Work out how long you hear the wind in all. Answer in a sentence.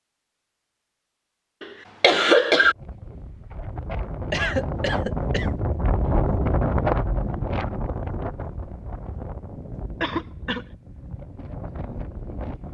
You can hear the wind for 10 seconds altogether.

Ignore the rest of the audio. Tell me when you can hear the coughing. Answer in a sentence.
The coughing can be heard from 1.6 to 2.8 s, from 4.3 to 5.5 s and from 10.0 to 10.7 s.